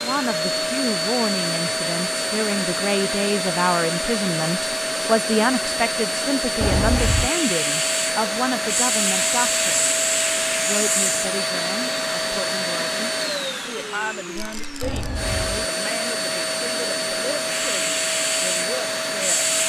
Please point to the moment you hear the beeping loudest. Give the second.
7 s.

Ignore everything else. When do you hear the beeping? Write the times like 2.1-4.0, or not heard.
6.6-7.3, 14.8-15.7.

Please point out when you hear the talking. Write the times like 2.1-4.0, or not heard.
0.0-9.9, 10.7-19.6.